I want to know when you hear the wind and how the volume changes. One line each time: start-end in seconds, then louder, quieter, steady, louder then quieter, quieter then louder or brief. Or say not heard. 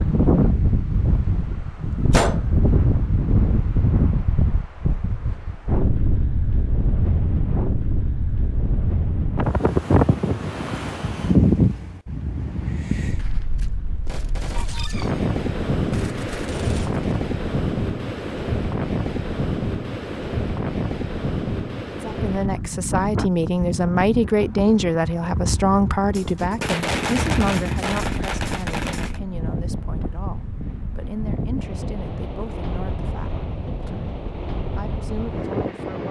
0.0-36.0 quieter.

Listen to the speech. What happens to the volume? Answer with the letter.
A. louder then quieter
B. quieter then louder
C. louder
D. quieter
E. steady
D.